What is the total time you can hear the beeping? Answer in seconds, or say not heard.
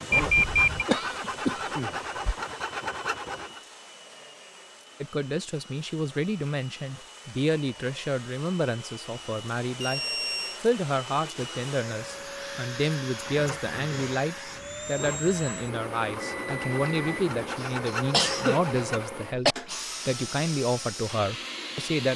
3 s.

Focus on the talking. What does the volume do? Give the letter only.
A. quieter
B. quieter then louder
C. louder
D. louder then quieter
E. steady
E.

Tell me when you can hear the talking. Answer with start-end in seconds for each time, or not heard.
5.0-10.0, 10.6-22.1.